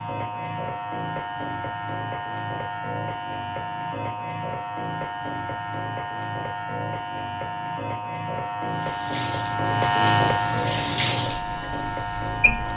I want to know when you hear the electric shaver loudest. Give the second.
10 s.